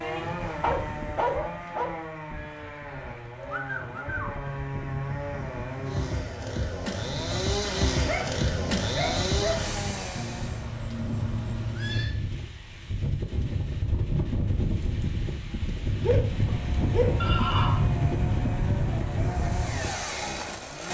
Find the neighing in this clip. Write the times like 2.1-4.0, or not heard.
2.3-4.5, 10.2-12.2, 17.2-17.8.